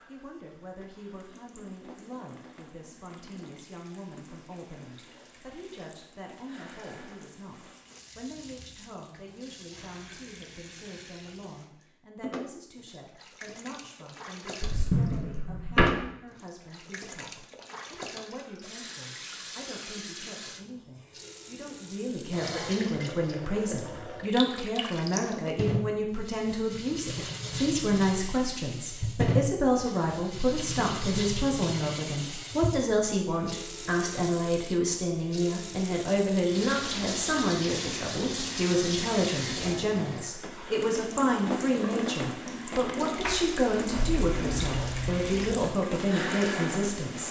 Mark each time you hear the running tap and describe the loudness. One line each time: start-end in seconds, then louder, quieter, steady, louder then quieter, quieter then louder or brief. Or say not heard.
0.0-47.2 louder.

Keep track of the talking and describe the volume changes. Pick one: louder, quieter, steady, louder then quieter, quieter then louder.
louder.